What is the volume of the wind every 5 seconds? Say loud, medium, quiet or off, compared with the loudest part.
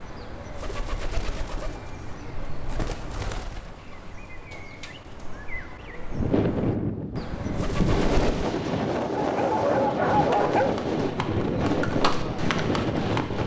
off, loud, loud.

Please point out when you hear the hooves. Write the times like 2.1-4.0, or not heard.
10.1-13.4.